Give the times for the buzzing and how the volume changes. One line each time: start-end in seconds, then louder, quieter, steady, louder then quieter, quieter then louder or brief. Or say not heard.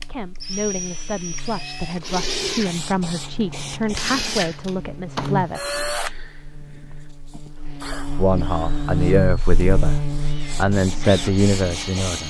0.0-12.2 louder.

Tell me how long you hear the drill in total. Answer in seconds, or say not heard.
12 s.